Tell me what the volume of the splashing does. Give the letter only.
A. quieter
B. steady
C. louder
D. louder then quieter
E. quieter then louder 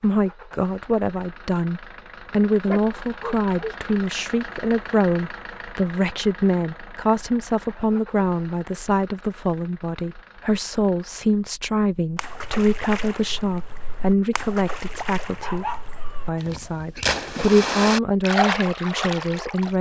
E.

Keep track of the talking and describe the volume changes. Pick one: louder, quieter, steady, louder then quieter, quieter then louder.
steady.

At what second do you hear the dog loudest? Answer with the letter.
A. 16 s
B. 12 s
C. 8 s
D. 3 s
A.